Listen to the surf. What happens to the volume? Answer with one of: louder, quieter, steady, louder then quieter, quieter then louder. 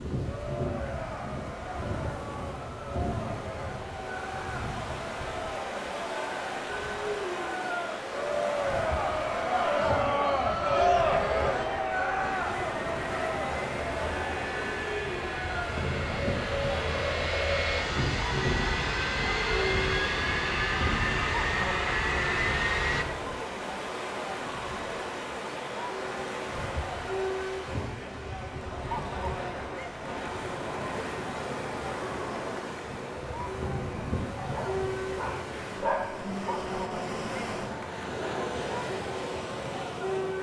steady.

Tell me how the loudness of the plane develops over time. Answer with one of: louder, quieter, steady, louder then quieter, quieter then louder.
louder.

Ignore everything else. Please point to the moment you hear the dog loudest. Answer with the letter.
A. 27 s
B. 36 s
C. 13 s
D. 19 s
B.